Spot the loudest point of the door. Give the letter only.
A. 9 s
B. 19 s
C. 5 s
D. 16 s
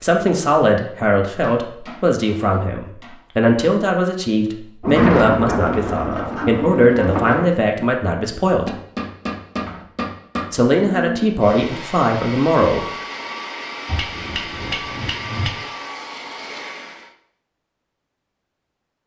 C.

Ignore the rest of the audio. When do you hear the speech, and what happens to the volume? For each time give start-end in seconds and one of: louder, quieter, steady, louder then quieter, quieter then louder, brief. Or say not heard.
0.0-8.7 steady
10.5-12.8 brief.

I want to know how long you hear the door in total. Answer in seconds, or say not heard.
3 s.